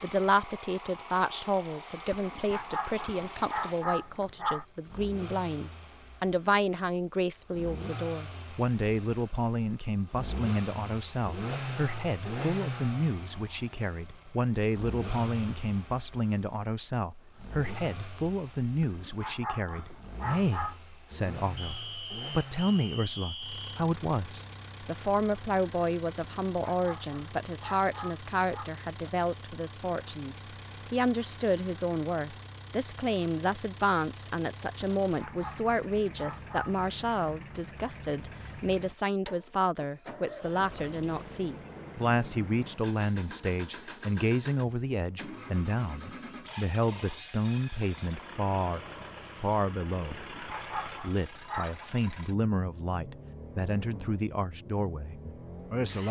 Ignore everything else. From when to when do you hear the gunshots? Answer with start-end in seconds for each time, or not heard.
not heard.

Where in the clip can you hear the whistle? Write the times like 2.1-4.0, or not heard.
21.6-23.9.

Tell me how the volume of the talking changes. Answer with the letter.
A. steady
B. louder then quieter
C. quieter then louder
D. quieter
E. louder
A.